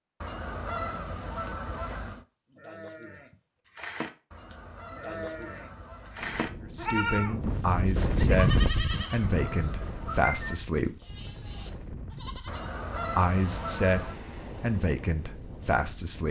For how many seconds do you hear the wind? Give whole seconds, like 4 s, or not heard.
10 s.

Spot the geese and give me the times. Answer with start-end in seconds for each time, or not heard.
0.2-2.2, 4.3-6.3, 8.9-10.6, 12.4-14.2.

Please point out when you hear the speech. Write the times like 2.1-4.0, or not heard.
6.6-10.9, 13.2-16.2.